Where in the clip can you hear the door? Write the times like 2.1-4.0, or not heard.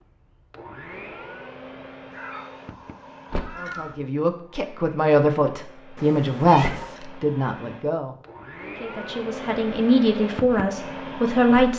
3.3-3.8, 6.6-7.0.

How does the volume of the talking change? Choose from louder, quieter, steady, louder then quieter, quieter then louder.
quieter then louder.